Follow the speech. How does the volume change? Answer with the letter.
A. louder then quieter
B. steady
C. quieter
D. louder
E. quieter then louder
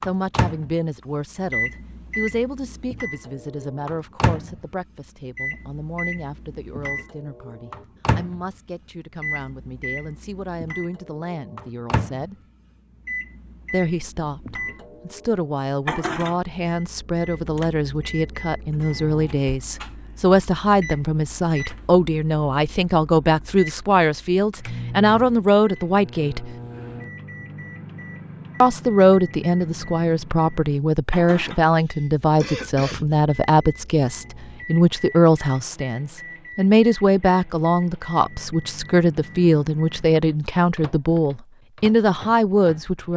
D.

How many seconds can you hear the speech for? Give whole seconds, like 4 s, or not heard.
40 s.